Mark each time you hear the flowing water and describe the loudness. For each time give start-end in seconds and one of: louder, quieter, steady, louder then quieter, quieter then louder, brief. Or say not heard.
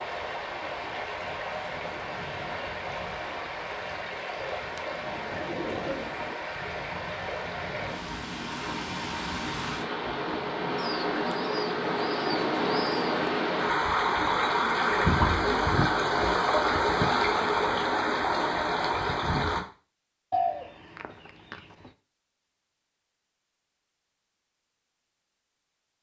0.0-19.6 louder.